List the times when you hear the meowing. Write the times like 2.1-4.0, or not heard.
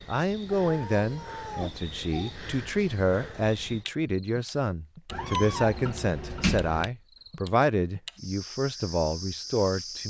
0.7-2.3, 5.1-6.8.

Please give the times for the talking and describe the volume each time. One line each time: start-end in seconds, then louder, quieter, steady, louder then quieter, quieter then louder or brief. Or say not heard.
0.1-10.0 steady.